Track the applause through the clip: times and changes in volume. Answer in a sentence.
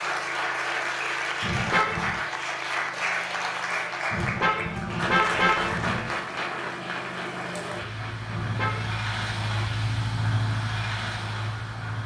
You can hear the applause from 0.0 to 12.0 s, getting quieter.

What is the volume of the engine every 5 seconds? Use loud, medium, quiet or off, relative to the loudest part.
quiet, loud, loud.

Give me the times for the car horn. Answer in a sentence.
You can hear the car horn from 1.4 to 2.2 s, from 4.1 to 6.1 s and from 8.2 to 9.1 s.